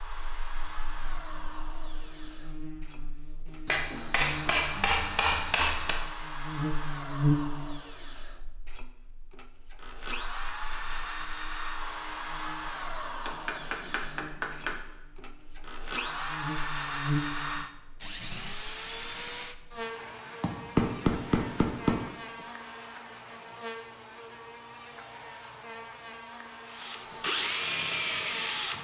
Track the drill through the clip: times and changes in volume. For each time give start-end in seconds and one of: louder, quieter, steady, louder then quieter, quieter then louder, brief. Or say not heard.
0.0-20.6 louder
26.6-28.7 brief.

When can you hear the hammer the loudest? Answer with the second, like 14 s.
21 s.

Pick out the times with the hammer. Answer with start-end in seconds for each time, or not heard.
3.6-6.0, 13.2-14.8, 20.4-22.1.